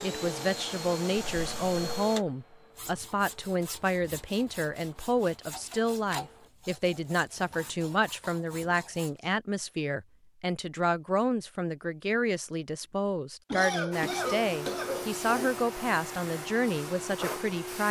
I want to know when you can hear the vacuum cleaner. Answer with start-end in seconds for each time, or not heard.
0.0-6.5, 13.9-17.8.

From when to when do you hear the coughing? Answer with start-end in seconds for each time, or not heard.
1.1-1.8, 7.5-8.4, 13.5-15.5.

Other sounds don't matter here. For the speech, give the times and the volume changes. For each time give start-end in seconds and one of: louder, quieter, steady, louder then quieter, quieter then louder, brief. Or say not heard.
0.0-17.8 steady.